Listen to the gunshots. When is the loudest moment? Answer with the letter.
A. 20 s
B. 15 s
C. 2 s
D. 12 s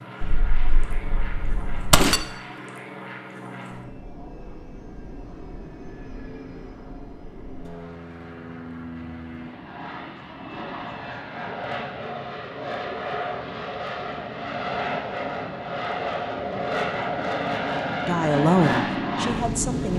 C.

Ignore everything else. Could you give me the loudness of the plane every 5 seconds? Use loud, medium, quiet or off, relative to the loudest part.
quiet, quiet, medium, loud.